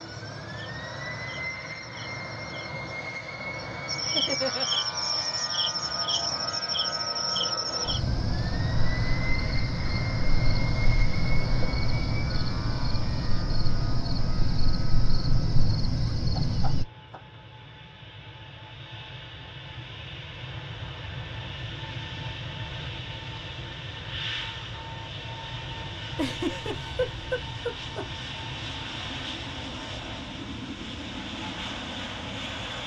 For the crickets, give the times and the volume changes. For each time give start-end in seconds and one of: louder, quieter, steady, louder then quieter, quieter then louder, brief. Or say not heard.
0.0-16.9 louder.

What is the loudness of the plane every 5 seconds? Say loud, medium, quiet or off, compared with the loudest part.
loud, loud, loud, medium, loud, loud, loud.